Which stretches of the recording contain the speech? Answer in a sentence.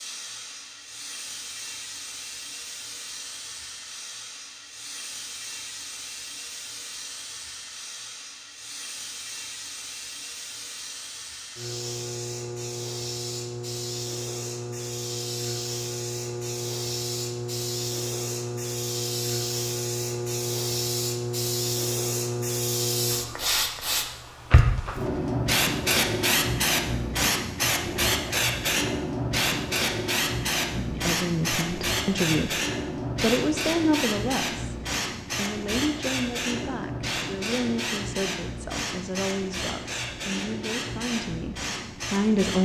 The speech can be heard from 30.8 to 42.6 s.